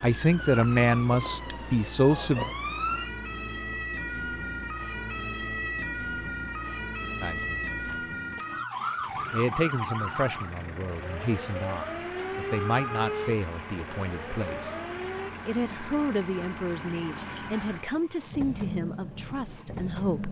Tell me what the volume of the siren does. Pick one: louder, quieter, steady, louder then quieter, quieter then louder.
steady.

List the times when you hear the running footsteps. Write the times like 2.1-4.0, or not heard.
not heard.